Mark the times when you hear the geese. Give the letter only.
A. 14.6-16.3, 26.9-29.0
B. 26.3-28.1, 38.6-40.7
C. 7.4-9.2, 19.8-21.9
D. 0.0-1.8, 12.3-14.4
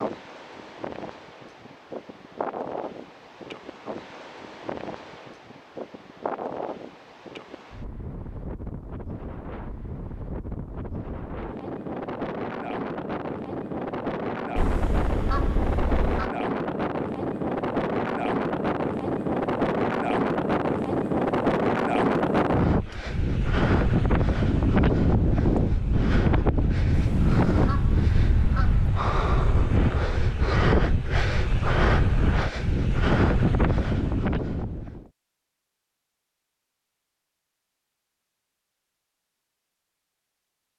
A.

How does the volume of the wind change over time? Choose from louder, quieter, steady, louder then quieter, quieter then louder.
louder.